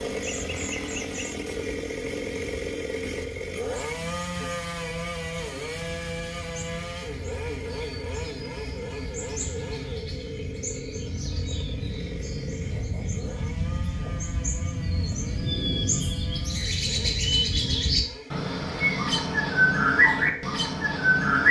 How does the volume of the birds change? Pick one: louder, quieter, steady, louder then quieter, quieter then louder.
louder.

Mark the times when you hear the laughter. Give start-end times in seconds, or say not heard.
0.2-1.4.